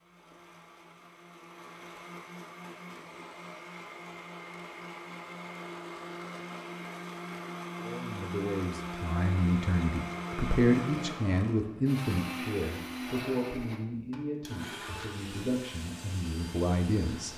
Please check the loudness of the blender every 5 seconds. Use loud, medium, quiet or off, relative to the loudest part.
medium, loud, loud, medium.